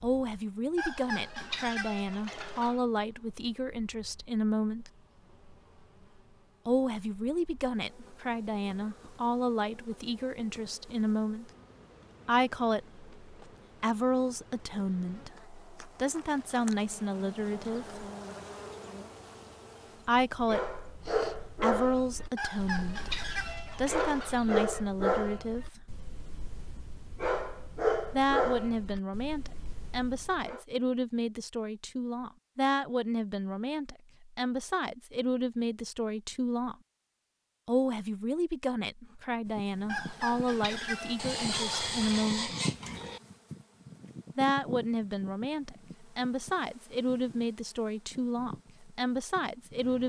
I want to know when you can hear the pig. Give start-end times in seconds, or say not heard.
41.1-43.2.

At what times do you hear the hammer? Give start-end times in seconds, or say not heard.
not heard.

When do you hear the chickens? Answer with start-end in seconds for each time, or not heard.
0.8-2.9, 22.4-24.8, 39.9-42.0.